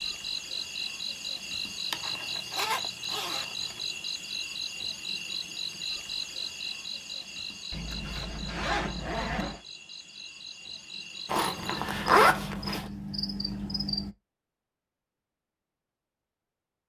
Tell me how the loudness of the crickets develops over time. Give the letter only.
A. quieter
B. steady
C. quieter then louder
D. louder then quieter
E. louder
C.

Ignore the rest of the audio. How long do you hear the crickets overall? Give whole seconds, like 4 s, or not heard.
14 s.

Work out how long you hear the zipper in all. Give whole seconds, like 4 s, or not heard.
5 s.